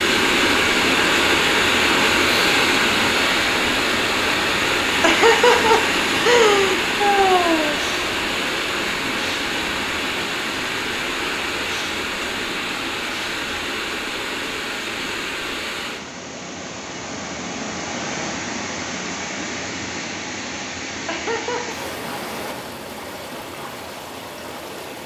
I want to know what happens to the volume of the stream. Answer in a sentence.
The volume of the stream goes down.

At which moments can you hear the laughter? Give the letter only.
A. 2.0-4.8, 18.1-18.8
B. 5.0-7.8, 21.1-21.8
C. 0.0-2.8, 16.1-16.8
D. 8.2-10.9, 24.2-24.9
B.